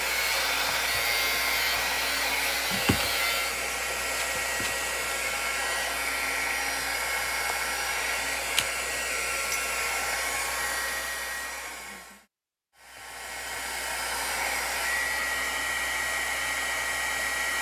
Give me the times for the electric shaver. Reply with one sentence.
You can hear the electric shaver from 0.0 to 3.6 s.